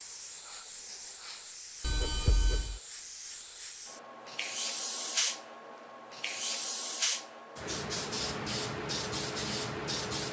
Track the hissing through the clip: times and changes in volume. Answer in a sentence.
The hissing can be heard from 0.0 to 10.2 s, getting louder.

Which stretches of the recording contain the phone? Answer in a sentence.
You can hear the phone from 1.8 to 2.8 s.